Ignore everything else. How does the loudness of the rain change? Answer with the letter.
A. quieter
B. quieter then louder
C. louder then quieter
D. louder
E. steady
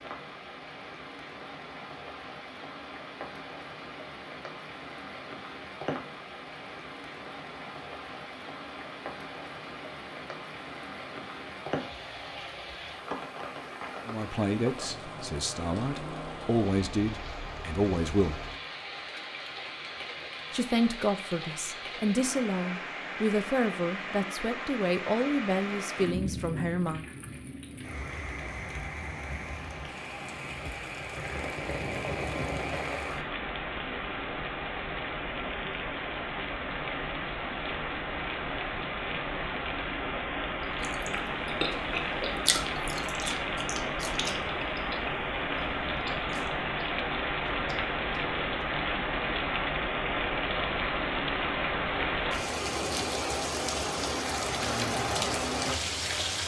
D.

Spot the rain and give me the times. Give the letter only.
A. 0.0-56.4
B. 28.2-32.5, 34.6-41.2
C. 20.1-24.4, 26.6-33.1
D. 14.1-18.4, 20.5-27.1
A.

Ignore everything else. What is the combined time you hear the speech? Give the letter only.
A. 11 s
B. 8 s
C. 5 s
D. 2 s
A.